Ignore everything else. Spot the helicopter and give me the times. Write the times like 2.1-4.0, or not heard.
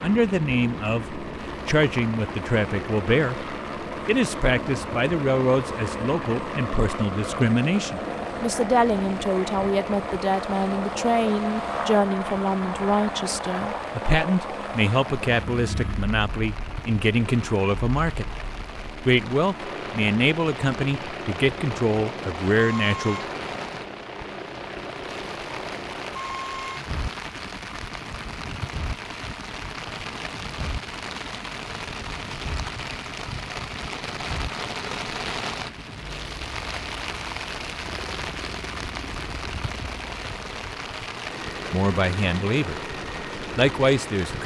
0.0-44.4.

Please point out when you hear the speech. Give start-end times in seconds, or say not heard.
0.0-18.2, 19.1-23.2, 41.7-42.8, 43.5-44.4.